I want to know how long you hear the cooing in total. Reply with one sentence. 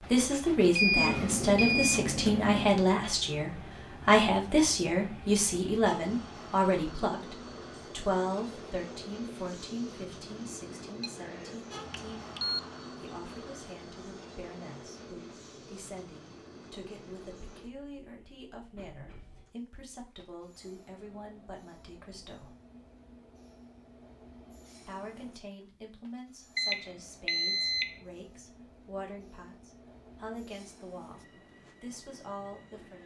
You can hear the cooing for 2 seconds altogether.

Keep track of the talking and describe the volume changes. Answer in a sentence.
The loudness of the talking goes down.